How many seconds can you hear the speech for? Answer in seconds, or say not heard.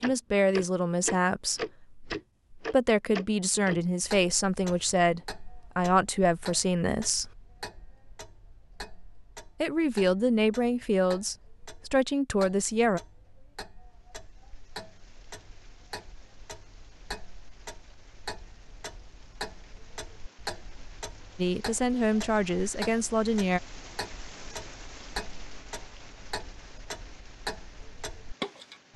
13 s.